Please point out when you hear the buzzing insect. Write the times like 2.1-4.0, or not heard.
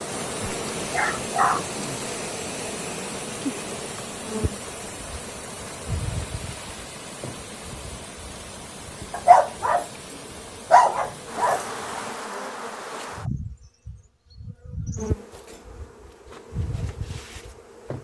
0.0-18.0.